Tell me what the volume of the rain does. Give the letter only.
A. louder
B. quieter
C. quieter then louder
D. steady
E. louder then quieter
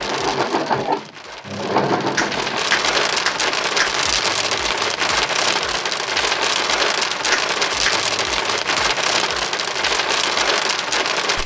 A.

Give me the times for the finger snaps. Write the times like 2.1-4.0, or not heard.
2.1-4.0, 7.3-8.0.